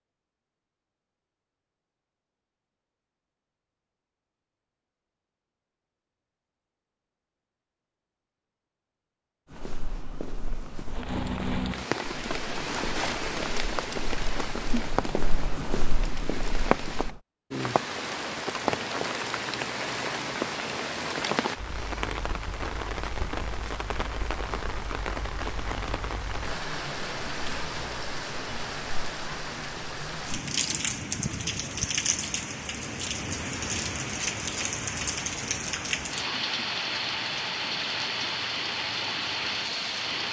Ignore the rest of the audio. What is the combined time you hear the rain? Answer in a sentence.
You can hear the rain for 29 seconds altogether.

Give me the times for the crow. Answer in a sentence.
You can't hear the crow here.